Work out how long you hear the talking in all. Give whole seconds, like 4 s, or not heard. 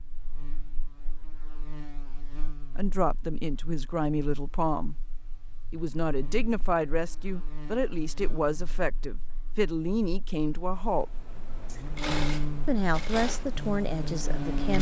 10 s.